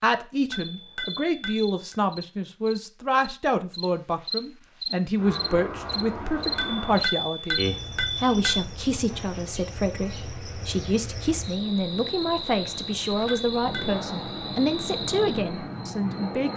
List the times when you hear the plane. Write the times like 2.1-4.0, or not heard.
5.2-7.0, 13.6-16.5.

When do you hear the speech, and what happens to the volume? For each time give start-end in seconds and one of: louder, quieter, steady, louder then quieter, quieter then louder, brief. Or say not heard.
0.0-16.5 steady.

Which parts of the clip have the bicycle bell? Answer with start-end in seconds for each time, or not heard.
0.5-1.9, 6.5-8.6, 13.2-13.9.